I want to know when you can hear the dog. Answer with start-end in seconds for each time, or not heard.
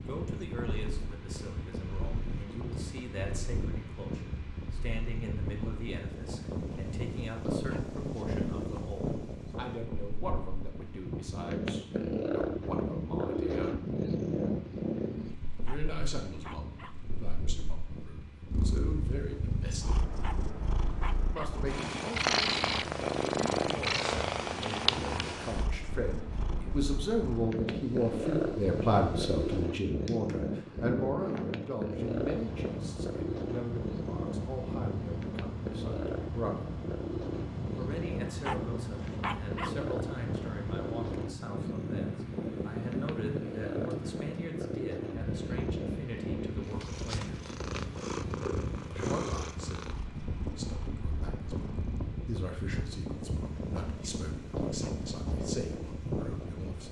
15.7-16.9, 20.2-21.6, 38.4-39.8.